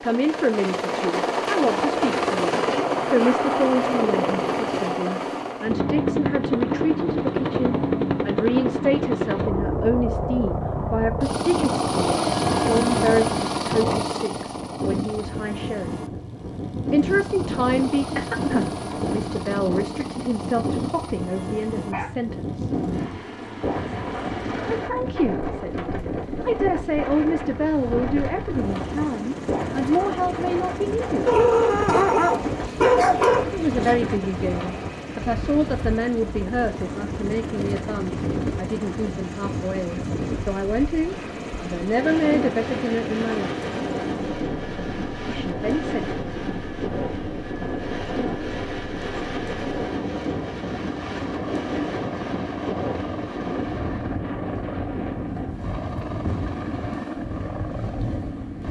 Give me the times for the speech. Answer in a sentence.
The speech can be heard from 0.0 to 15.9 s, from 16.9 to 22.7 s, from 24.6 to 31.3 s, from 33.5 to 43.6 s and from 45.2 to 46.2 s.